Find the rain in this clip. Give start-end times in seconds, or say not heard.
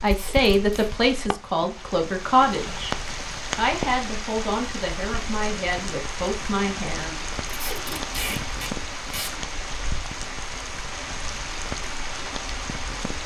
0.0-13.2.